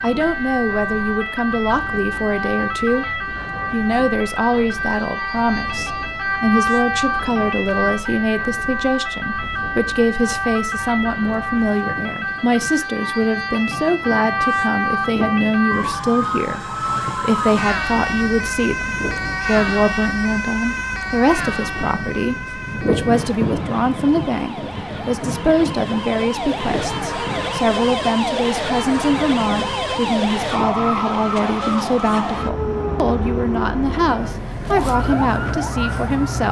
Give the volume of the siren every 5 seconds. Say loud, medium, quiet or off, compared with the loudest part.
loud, loud, loud, loud, medium, loud, loud, loud.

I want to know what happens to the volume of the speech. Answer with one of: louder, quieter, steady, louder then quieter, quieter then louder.
steady.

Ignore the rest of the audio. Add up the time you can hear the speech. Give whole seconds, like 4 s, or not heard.
36 s.